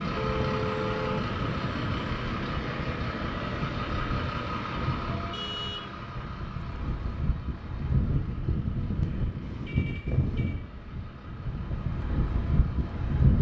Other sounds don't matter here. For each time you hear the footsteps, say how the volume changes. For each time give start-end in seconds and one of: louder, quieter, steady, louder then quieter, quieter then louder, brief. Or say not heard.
not heard.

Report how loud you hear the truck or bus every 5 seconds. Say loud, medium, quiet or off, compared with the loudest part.
loud, medium, quiet.